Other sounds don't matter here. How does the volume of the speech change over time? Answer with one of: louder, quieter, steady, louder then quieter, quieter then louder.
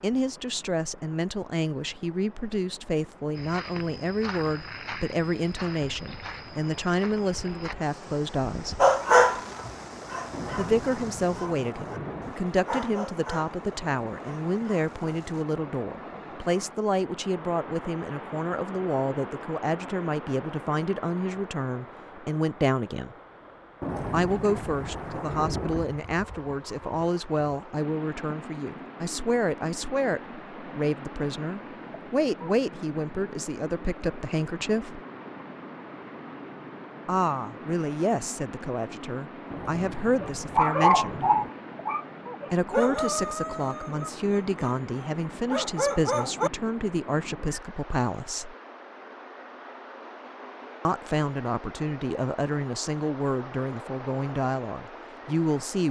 steady.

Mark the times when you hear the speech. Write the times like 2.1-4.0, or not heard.
0.0-8.8, 10.6-23.1, 24.1-35.0, 37.0-41.2, 42.5-48.5, 50.9-55.8.